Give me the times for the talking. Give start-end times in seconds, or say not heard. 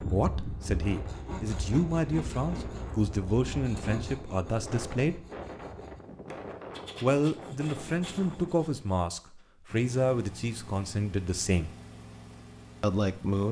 0.0-5.2, 7.0-11.7, 12.8-13.4.